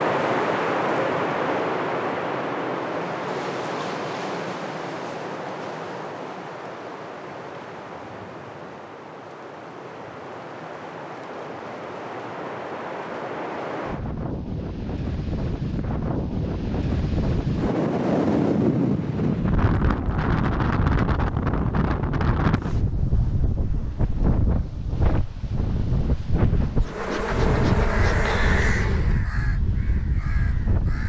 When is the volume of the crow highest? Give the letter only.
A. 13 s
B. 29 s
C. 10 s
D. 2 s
B.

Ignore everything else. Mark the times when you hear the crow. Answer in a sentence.
You can hear the crow from 27.8 to 31.0 s.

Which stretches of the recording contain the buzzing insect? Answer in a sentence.
You can hear the buzzing insect from 26.8 to 29.2 s.